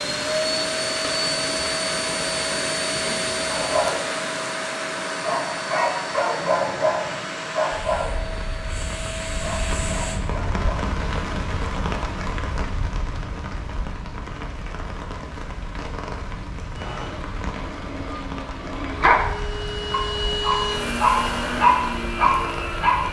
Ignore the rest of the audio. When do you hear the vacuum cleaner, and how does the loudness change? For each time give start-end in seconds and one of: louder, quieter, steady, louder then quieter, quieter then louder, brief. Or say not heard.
0.0-10.2 quieter
16.7-23.0 louder.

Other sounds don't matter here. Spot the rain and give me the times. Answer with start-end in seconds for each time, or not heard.
0.0-23.0.